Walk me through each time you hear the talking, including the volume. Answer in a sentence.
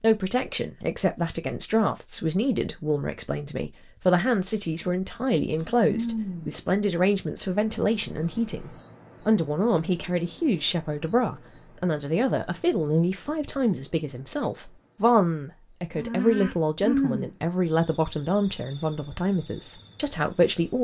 You can hear the talking from 0.0 to 20.7 s, at a steady volume.